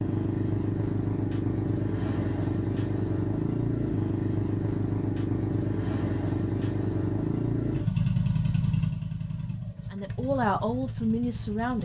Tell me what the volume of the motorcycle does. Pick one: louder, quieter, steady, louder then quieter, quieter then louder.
quieter.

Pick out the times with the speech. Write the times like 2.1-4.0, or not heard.
9.9-11.8.